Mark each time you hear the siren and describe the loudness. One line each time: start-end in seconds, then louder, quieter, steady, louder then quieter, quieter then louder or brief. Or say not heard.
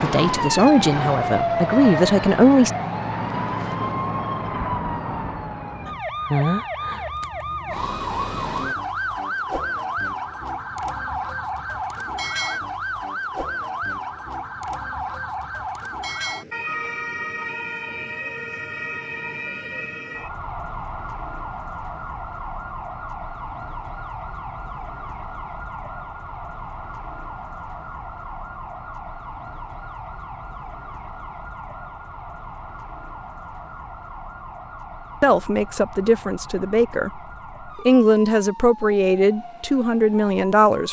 0.0-40.8 quieter.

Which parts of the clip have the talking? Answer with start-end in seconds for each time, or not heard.
0.0-2.7, 35.2-40.8.